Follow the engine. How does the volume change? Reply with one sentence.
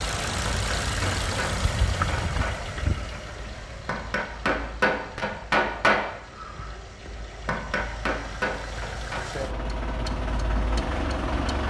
The volume of the engine goes down, then up.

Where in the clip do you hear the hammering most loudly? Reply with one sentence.
The volume of the hammering peaks at 6 seconds.